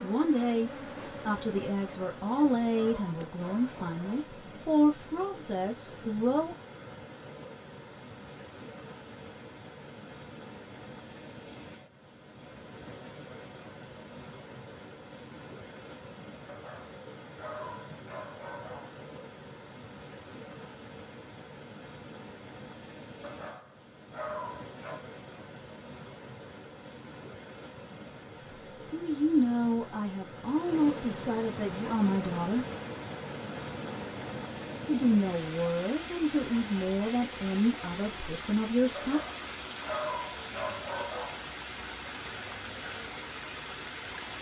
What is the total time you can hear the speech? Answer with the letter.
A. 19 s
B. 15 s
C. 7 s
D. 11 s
B.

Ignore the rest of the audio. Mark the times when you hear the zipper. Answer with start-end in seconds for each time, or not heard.
not heard.